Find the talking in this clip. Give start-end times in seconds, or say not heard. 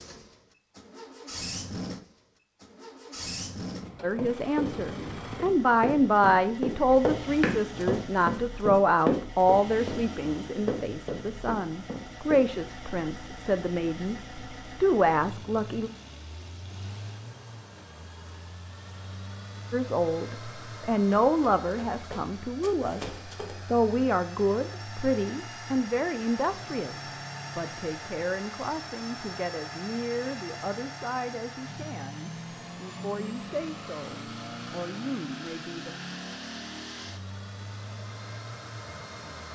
4.0-15.9, 19.7-36.0.